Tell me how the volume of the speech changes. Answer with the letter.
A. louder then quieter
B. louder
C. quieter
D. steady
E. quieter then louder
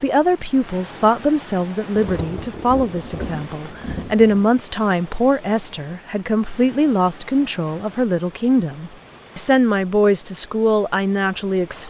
D.